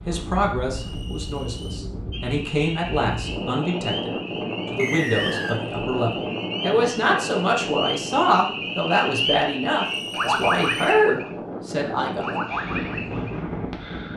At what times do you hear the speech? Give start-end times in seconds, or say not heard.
0.1-12.3.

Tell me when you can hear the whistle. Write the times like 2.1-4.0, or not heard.
0.7-1.6, 4.8-5.6, 9.8-11.1.